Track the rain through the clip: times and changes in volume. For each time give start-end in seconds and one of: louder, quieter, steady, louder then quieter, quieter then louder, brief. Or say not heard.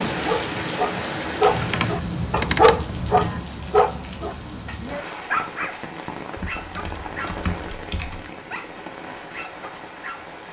0.0-10.4 quieter.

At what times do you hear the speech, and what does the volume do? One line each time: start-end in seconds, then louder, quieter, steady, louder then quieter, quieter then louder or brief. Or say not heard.
not heard.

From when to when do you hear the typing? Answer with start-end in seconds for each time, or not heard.
1.4-3.4, 6.3-8.3.